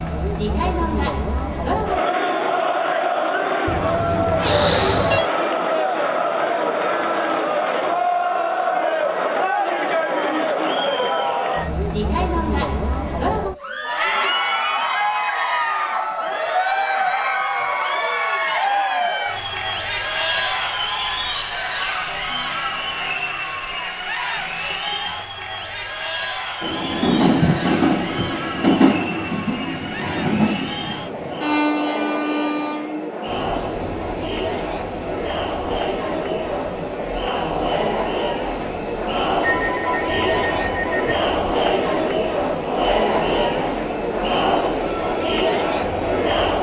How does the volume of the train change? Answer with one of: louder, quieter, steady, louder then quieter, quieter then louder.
quieter.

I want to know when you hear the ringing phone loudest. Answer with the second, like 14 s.
5 s.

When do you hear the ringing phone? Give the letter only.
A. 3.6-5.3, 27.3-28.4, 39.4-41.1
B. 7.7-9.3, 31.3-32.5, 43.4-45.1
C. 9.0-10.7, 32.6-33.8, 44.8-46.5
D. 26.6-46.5
A.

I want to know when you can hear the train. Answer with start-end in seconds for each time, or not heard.
26.6-46.5.